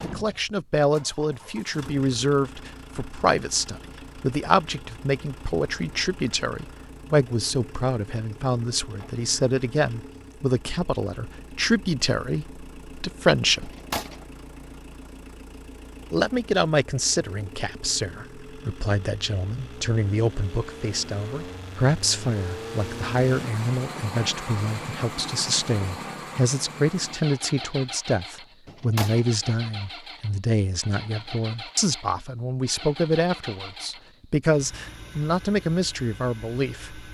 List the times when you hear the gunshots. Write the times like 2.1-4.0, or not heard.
8.8-9.2, 13.6-14.2, 28.6-29.3.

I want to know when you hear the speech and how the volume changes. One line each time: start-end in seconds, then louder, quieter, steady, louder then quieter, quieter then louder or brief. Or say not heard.
0.0-13.7 steady
16.1-37.0 steady.